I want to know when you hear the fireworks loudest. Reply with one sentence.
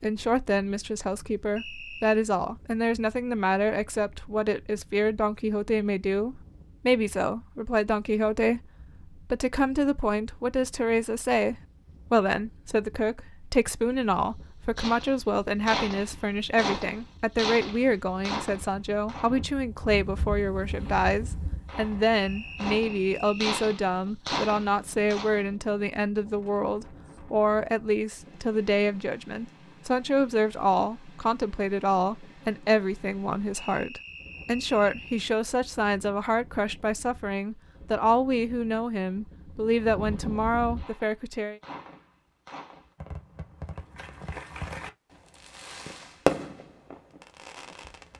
The volume of the fireworks peaks at 46 seconds.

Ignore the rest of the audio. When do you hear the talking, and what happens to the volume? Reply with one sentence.
You can hear the talking from 0.0 to 41.6 s, at a steady volume.